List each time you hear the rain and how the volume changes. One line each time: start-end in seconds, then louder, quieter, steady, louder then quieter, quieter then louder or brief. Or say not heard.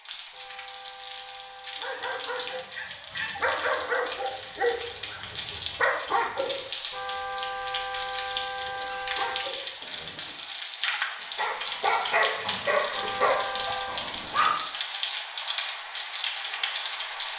0.0-17.3 louder.